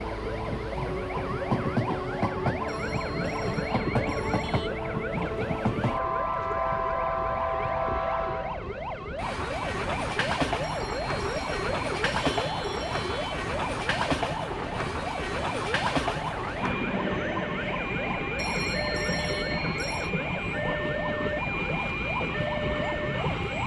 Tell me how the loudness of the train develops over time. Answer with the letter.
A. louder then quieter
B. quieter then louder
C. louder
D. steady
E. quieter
D.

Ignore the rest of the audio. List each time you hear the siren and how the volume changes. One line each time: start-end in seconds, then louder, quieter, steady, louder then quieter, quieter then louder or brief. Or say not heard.
0.0-23.6 steady.